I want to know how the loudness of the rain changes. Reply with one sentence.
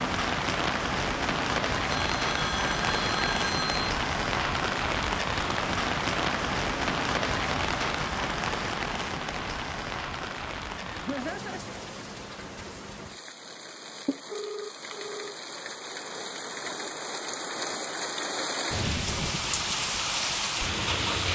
The volume of the rain goes down, then up.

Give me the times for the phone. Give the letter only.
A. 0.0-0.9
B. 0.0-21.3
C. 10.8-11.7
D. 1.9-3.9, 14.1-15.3
D.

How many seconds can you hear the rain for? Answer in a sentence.
You can hear the rain for 21 seconds altogether.